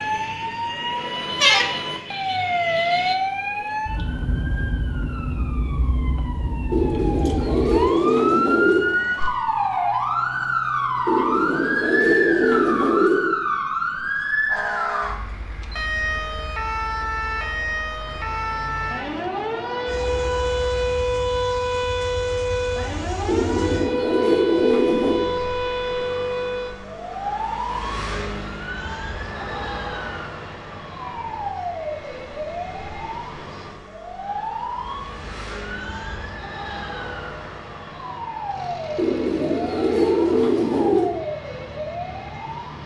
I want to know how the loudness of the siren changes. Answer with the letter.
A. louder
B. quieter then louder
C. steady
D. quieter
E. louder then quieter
D.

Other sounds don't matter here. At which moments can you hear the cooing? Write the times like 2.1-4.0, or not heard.
6.7-8.8, 11.1-13.3, 23.2-25.2, 39.0-41.1.